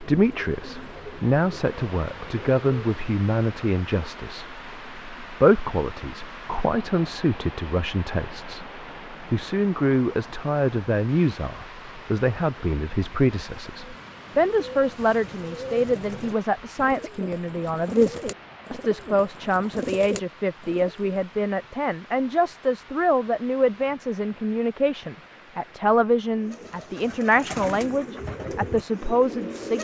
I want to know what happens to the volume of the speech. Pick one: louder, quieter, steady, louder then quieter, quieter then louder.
steady.